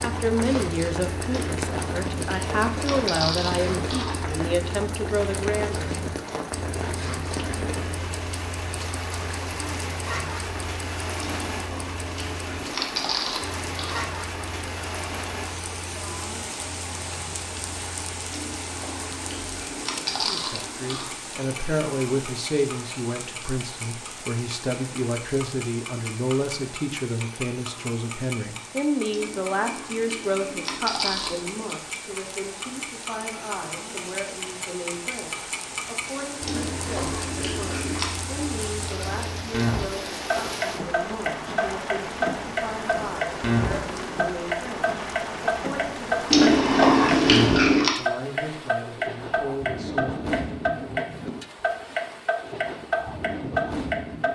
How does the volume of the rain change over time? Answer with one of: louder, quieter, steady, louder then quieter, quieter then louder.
quieter then louder.